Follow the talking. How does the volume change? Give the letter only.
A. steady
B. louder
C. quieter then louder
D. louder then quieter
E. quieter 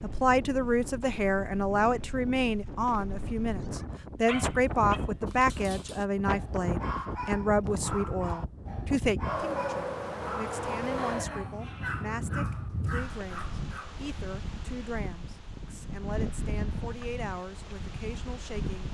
E.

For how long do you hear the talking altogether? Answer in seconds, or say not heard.
19 s.